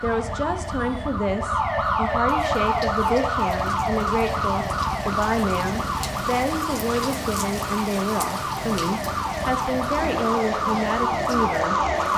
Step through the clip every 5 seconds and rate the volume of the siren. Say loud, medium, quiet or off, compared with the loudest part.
loud, medium, loud.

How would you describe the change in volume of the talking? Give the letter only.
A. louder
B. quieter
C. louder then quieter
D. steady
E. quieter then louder
D.